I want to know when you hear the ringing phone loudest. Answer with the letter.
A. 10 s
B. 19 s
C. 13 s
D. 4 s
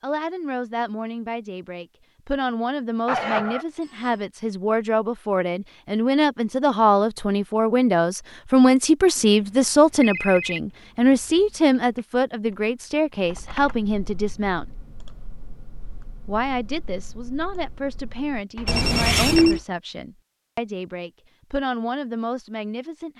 B.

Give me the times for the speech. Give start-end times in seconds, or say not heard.
0.0-14.7, 16.2-23.1.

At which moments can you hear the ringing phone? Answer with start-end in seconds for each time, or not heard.
3.0-4.2, 9.2-10.6, 18.6-19.6.